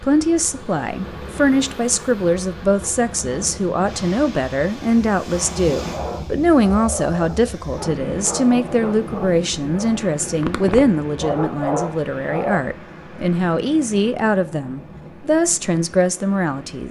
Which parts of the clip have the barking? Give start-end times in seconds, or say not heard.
5.8-12.6.